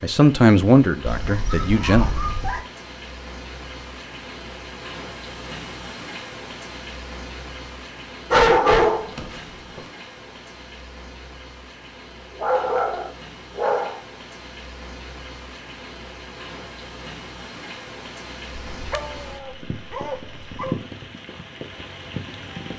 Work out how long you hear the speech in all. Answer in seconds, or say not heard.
2 s.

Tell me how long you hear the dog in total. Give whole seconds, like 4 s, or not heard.
7 s.